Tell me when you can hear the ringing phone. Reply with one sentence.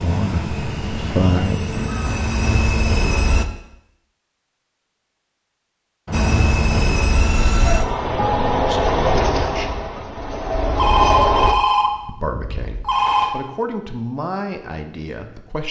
The ringing phone can be heard from 1.4 to 2.0 s, from 6.0 to 7.0 s and from 10.8 to 13.3 s.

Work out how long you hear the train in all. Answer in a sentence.
You can hear the train for 9 seconds altogether.